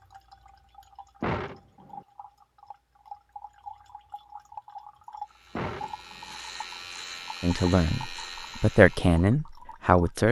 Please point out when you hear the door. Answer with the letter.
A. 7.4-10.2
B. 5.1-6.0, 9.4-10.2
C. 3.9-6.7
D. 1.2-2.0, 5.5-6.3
D.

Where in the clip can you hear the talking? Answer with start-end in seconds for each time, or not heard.
7.4-10.2.